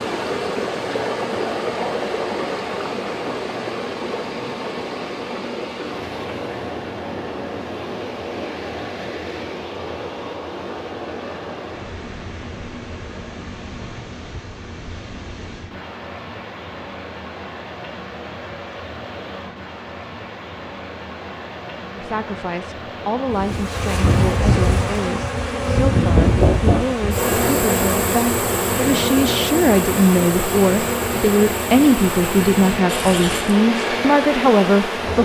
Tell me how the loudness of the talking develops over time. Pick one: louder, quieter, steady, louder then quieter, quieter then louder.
louder.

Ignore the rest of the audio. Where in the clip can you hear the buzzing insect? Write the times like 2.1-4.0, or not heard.
23.2-35.2.